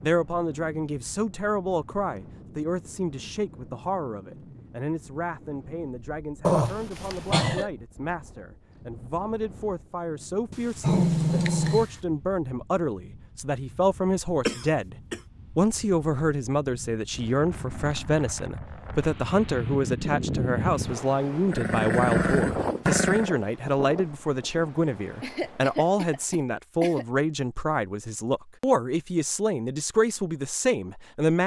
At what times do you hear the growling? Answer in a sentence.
The growling can be heard from 6.4 to 7.7 s, from 10.5 to 11.9 s and from 21.5 to 23.3 s.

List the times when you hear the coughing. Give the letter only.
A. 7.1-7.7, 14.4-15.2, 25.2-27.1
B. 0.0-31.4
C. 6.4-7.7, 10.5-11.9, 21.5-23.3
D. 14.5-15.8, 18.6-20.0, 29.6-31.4
A.